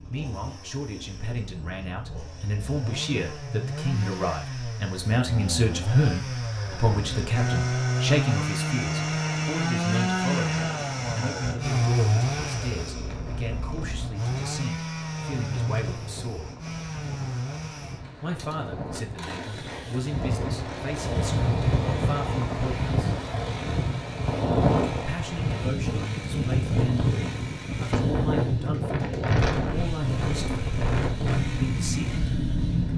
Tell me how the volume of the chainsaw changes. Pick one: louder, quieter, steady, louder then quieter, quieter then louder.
louder then quieter.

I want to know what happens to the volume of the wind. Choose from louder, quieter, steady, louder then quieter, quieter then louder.
louder.